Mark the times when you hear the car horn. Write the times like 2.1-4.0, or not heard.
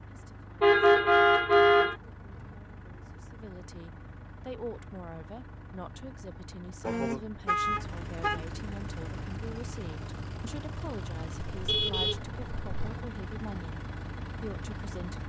0.6-1.9, 6.8-8.6, 11.3-12.9.